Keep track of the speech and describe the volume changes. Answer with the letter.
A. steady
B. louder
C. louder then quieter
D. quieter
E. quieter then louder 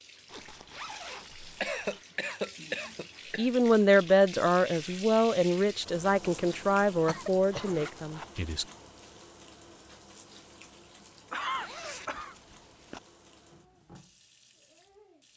D.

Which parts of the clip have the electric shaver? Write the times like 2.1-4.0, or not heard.
not heard.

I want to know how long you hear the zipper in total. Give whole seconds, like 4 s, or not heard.
4 s.